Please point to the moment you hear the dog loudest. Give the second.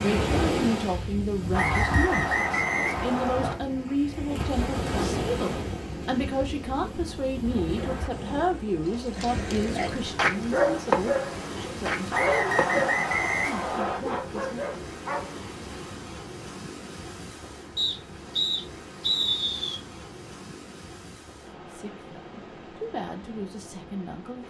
11 s.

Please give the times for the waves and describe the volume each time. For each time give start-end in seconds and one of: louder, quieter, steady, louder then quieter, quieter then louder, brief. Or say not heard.
0.0-24.4 quieter.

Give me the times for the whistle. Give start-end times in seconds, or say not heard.
1.5-3.5, 12.1-14.0, 17.8-19.8.